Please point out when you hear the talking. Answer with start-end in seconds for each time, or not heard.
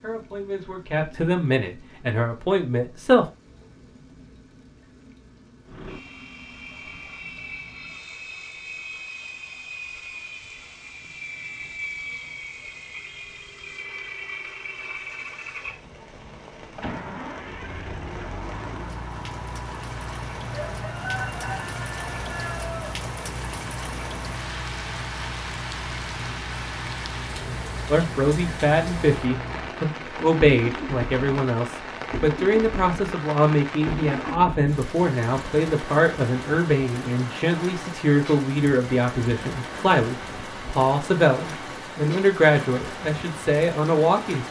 0.0-3.3, 27.9-44.4.